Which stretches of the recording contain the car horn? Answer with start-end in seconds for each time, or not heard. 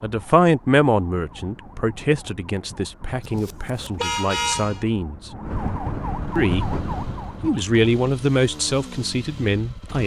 3.2-4.8.